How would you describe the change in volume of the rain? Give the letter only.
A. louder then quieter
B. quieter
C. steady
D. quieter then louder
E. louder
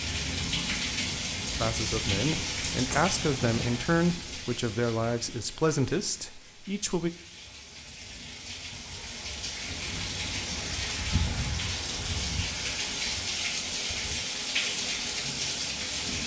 D.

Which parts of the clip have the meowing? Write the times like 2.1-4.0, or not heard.
2.9-3.9.